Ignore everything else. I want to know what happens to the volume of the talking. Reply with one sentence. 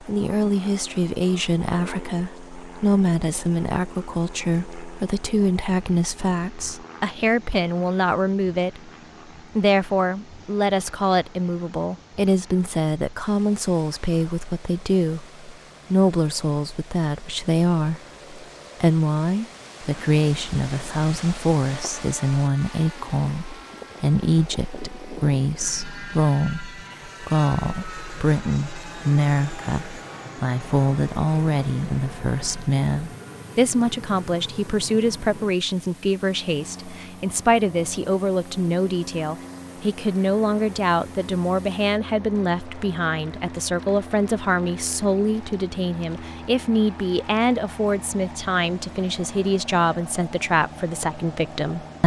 The volume of the talking stays about the same.